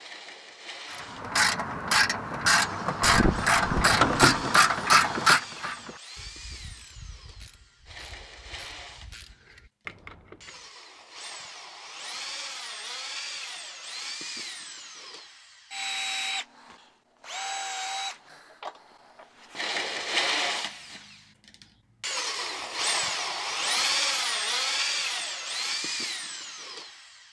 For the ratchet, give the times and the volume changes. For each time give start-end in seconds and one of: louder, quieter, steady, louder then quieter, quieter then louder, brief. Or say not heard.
0.9-10.6 quieter then louder.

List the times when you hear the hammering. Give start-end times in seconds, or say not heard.
3.0-4.5.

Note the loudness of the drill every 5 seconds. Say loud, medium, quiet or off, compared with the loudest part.
quiet, quiet, medium, medium, loud, medium.